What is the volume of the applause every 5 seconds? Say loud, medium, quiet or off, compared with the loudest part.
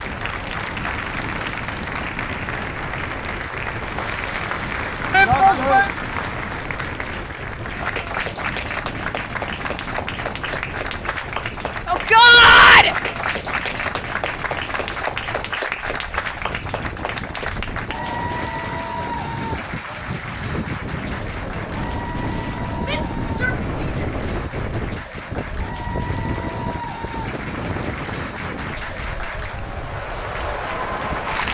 loud, loud, loud, loud, medium, medium, loud.